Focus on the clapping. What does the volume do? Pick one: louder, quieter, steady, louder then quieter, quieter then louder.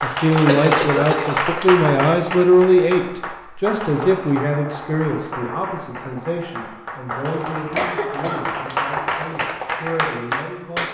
quieter then louder.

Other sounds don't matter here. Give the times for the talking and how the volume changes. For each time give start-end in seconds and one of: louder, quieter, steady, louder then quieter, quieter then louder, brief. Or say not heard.
0.0-10.8 quieter.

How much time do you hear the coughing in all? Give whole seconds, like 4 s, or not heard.
2 s.